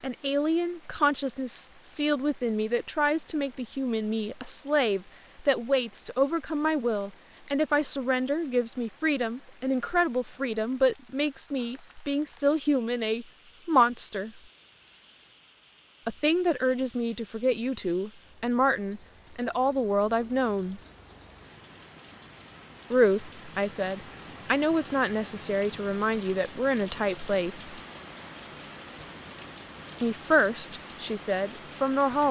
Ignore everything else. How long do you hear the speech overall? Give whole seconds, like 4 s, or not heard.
26 s.